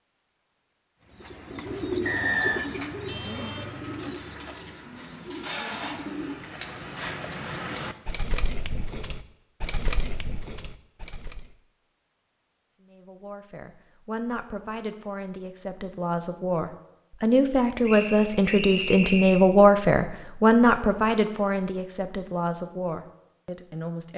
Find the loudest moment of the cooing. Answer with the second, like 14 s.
2 s.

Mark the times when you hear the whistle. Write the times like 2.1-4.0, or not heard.
2.0-2.6, 17.9-19.5.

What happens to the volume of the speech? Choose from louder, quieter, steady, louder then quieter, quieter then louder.
louder then quieter.